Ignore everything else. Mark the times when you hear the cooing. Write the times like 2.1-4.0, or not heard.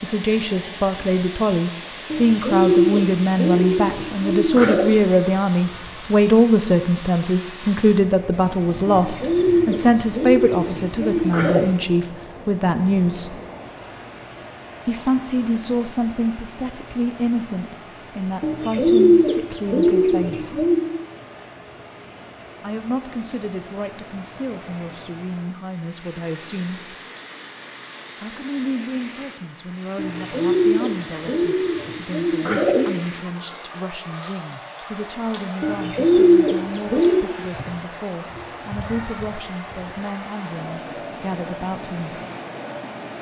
2.1-5.0, 8.8-11.7, 18.4-20.9, 29.9-32.9, 35.6-37.2.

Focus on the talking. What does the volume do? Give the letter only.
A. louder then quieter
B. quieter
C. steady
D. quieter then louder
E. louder
B.